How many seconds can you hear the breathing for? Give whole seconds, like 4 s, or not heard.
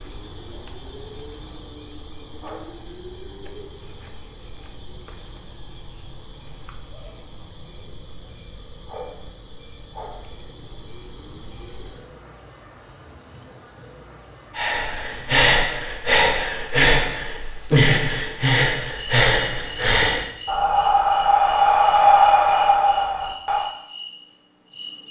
9 s.